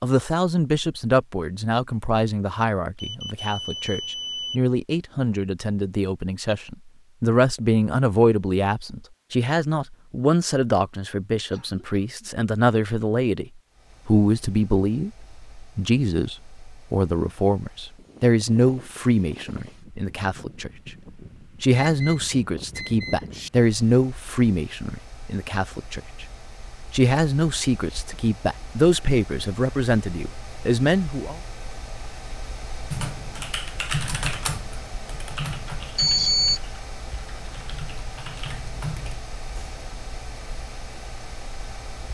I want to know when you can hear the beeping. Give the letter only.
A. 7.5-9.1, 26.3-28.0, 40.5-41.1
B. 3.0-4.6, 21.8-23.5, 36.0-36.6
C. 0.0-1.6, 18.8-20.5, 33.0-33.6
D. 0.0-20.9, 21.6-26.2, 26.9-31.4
B.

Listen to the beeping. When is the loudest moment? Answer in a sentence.
The volume of the beeping peaks at 36 seconds.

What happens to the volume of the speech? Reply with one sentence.
The loudness of the speech stays about the same.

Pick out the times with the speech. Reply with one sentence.
You can hear the speech from 0.0 to 20.9 s, from 21.6 to 26.2 s and from 26.9 to 31.4 s.